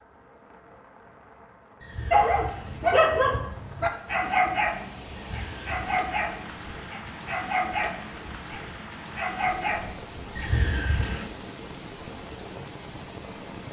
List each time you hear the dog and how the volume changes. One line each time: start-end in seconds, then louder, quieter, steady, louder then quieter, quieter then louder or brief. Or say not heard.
2.1-10.5 quieter.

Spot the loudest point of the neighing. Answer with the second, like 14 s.
11 s.